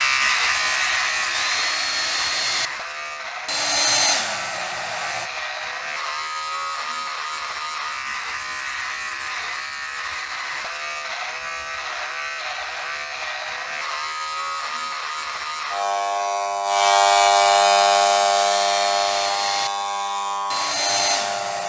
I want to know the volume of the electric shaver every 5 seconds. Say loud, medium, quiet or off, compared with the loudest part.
medium, medium, medium, loud, medium.